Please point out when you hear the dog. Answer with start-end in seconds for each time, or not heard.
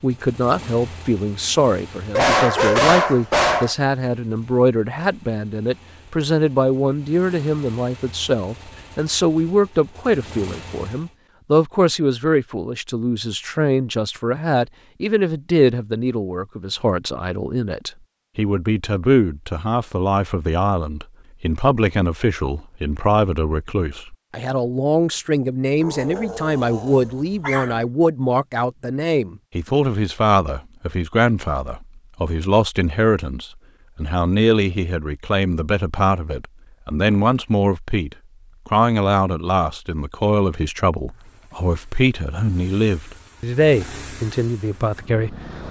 2.1-3.8, 25.8-27.8.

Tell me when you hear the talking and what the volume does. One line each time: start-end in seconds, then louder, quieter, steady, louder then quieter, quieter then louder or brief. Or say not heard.
0.0-45.6 steady.